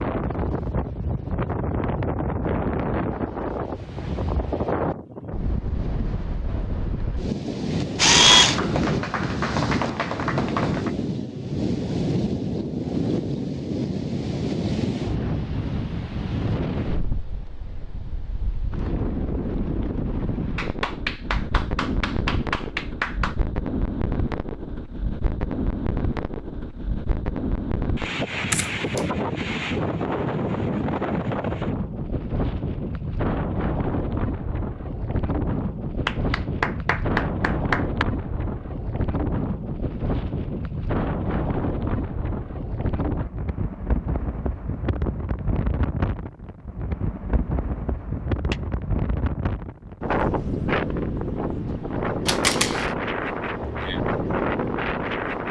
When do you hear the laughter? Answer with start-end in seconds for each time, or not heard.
not heard.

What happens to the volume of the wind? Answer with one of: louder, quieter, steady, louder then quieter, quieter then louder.
steady.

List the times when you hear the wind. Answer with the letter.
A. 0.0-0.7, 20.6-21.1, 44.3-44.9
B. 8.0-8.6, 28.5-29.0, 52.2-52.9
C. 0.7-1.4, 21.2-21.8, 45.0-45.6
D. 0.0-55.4
D.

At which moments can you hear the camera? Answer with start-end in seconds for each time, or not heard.
8.0-8.6, 28.5-29.0, 52.2-52.9.